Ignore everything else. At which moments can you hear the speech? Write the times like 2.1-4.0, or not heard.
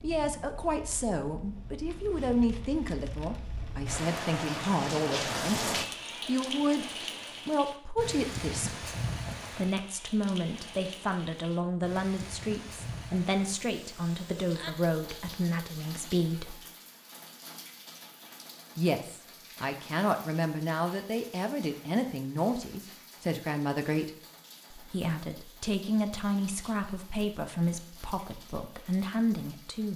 0.0-6.8, 7.5-8.9, 9.6-16.6, 18.8-24.1, 24.7-29.9.